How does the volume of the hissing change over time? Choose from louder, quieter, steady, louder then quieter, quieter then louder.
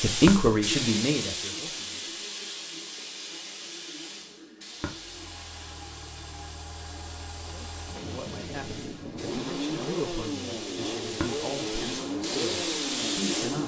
quieter then louder.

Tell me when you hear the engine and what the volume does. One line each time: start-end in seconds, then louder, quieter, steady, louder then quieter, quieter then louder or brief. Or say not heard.
4.8-13.6 louder.